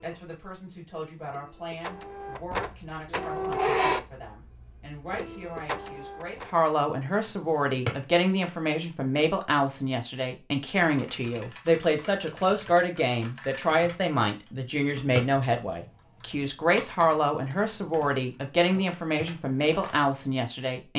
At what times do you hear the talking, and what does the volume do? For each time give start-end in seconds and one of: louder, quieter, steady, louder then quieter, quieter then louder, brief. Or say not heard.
0.0-20.9 louder.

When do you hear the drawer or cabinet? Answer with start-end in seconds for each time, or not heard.
7.6-8.1, 14.8-15.3.